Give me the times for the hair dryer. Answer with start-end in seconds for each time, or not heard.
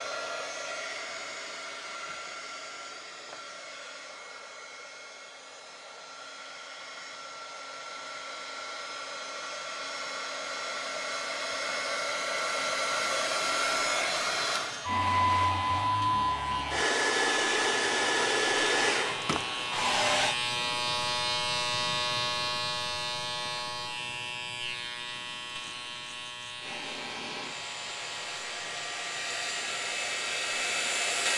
0.0-20.4, 26.6-31.3.